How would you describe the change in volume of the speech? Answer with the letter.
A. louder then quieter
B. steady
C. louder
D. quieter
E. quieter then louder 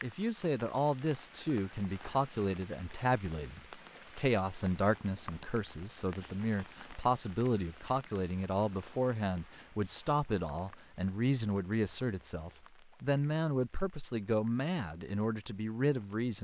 B.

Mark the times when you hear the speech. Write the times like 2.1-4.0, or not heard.
0.0-16.3.